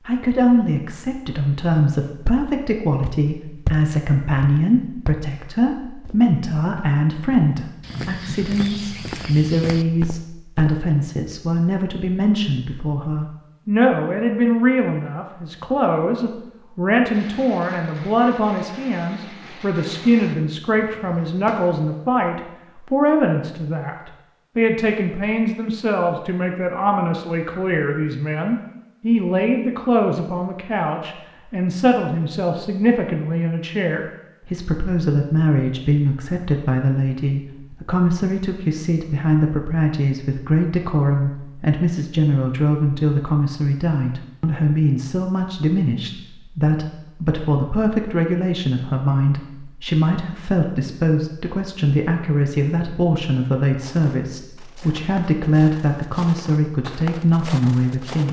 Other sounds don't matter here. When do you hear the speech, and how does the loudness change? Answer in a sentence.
You can hear the speech from 0.1 to 58.2 s, at a steady volume.